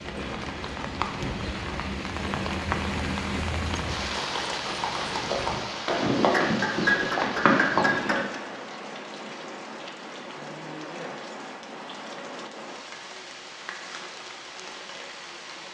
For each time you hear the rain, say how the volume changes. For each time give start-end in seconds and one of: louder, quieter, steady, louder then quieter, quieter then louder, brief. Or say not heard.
0.0-15.6 quieter.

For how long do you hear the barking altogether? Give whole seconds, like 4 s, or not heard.
not heard.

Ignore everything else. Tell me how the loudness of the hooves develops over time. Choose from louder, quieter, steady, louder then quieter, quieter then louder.
louder.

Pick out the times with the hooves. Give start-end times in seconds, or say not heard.
0.0-8.3.